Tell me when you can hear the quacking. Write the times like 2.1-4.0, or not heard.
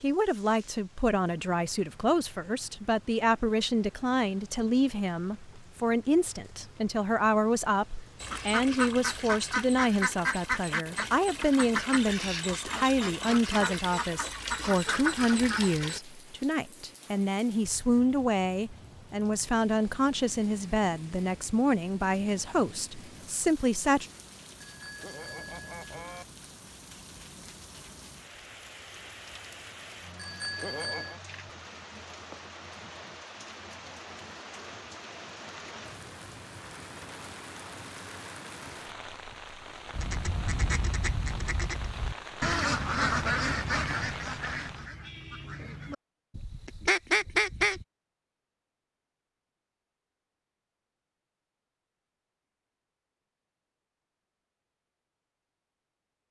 8.2-16.0, 39.9-47.9.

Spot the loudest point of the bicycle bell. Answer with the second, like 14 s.
31 s.